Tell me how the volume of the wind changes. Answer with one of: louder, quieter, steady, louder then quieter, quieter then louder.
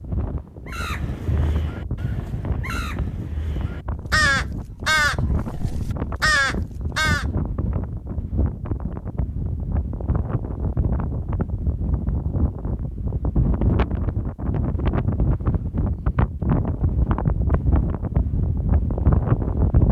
louder.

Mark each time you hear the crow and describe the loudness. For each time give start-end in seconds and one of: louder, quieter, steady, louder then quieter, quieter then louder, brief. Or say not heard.
0.7-7.2 louder.